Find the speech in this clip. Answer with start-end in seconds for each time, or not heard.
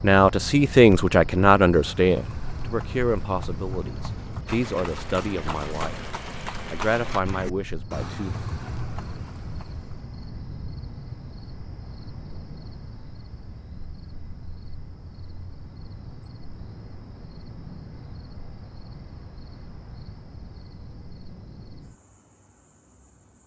0.0-6.0, 6.7-8.3.